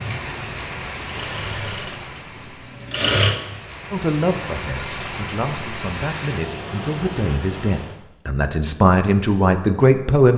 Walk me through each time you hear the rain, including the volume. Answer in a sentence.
The rain can be heard from 0.0 to 8.0 s, getting quieter then louder.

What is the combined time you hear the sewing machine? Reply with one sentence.
The sewing machine can be heard for 3 seconds in total.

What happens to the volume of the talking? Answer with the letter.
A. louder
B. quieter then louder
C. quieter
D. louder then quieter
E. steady
A.